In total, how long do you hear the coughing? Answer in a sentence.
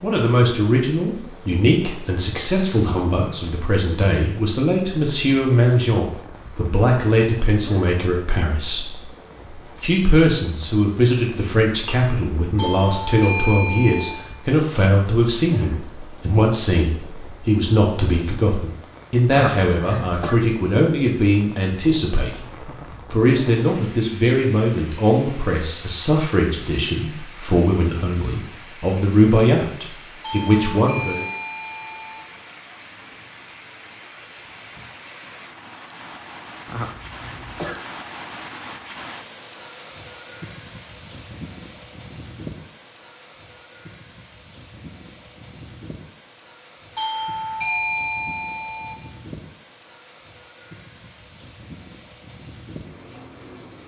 You can hear the coughing for 2 seconds altogether.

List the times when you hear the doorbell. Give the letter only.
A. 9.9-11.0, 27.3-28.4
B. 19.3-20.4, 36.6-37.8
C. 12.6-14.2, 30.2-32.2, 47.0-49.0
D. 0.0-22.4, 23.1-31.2
C.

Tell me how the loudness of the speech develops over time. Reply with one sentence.
The loudness of the speech stays about the same.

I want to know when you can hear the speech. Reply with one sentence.
The speech can be heard from 0.0 to 22.4 s and from 23.1 to 31.2 s.